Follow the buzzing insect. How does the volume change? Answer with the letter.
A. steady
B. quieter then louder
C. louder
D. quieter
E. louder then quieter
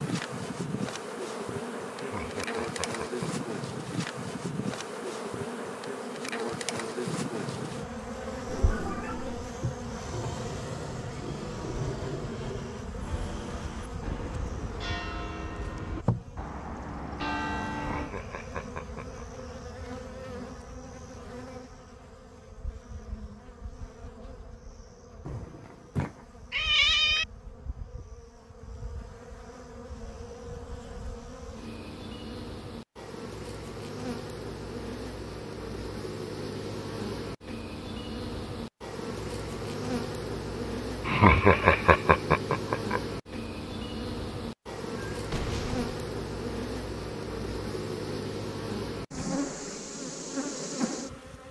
B.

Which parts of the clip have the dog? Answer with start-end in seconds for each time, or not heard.
not heard.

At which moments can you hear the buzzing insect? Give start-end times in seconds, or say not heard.
0.0-51.4.